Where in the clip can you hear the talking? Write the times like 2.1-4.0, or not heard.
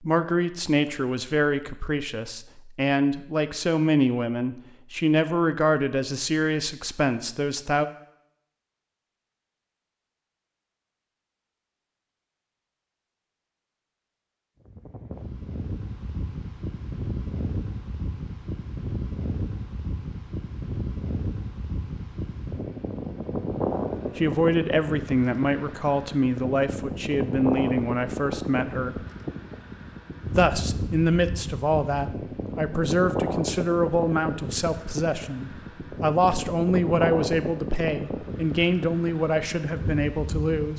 0.0-7.8, 24.1-29.0, 30.4-40.7.